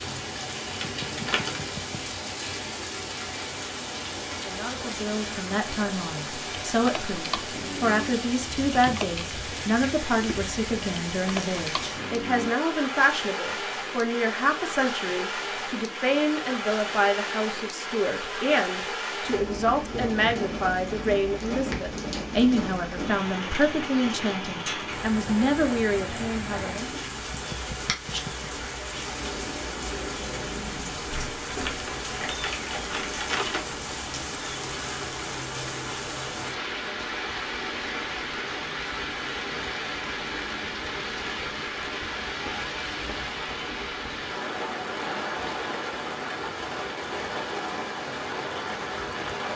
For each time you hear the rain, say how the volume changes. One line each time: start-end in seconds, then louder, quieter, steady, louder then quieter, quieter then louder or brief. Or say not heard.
0.0-49.5 steady.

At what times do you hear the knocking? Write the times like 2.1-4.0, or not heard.
0.8-2.0, 27.3-28.5.